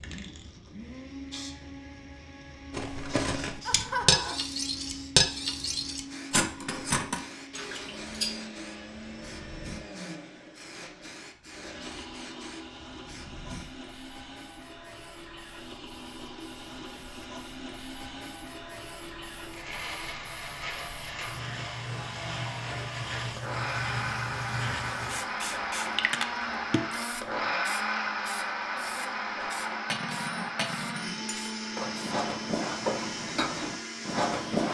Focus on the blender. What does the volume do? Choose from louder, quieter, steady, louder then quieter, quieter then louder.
louder.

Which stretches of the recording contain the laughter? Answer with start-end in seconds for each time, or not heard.
3.6-4.3.